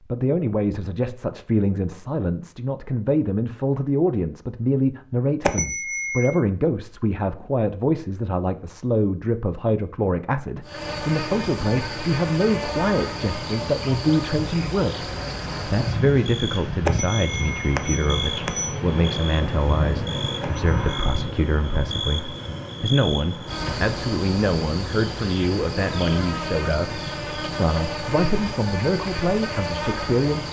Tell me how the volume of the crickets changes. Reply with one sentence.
The loudness of the crickets stays about the same.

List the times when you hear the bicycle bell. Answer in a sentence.
You can hear the bicycle bell from 5.4 to 6.3 s, from 16.9 to 18.8 s and from 20.4 to 21.1 s.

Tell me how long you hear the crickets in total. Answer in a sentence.
You can hear the crickets for 20 seconds altogether.